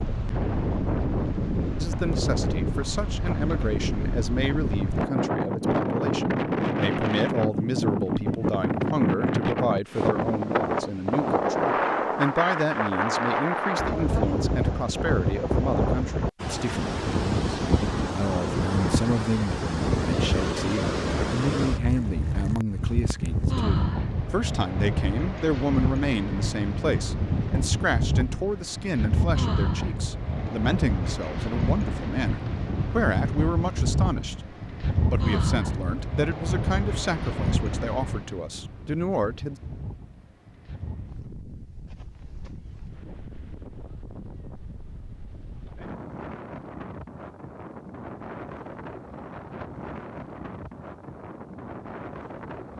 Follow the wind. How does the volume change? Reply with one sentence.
The volume of the wind goes down.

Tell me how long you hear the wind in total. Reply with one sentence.
The wind can be heard for 53 seconds in total.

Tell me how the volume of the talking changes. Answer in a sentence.
The loudness of the talking stays about the same.